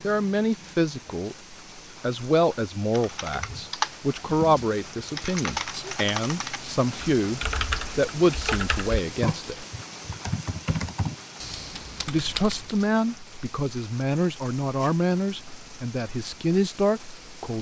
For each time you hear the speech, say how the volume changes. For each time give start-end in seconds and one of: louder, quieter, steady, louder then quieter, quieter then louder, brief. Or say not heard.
0.0-9.7 steady
12.1-17.5 quieter then louder.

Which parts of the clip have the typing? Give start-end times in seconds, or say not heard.
2.9-12.9.